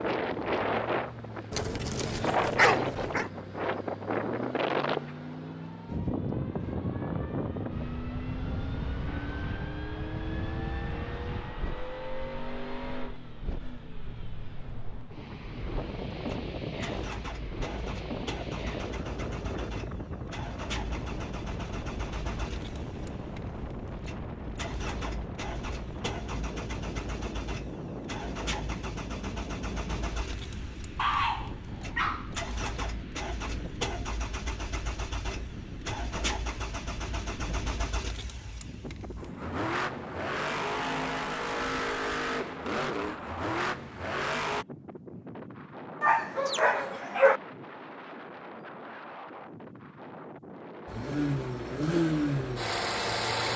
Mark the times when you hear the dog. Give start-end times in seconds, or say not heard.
1.5-3.3, 30.9-32.4, 46.0-47.4.